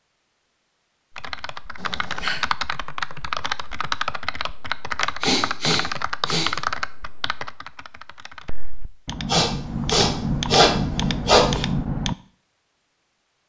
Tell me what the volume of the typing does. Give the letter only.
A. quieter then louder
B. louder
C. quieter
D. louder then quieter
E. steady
A.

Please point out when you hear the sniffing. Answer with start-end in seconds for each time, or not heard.
1.8-2.4, 5.2-6.5, 9.2-11.7.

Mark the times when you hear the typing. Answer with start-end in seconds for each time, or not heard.
1.1-12.2.